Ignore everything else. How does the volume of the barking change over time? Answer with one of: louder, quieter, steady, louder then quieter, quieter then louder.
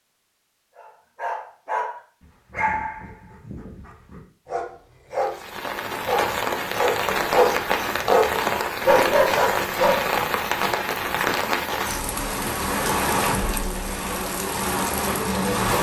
quieter then louder.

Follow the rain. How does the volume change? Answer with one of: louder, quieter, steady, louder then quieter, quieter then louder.
steady.